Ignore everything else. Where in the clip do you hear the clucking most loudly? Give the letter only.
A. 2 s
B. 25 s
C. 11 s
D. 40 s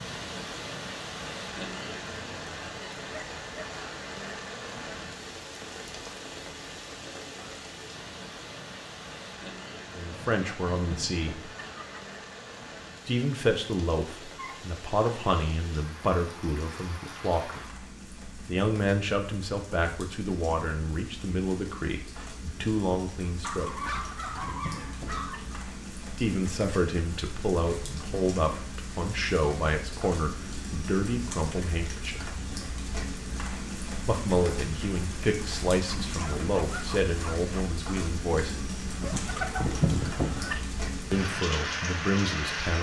D.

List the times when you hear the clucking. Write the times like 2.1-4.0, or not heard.
10.1-12.0, 23.9-25.6, 39.0-40.6.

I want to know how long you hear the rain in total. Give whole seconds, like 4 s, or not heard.
43 s.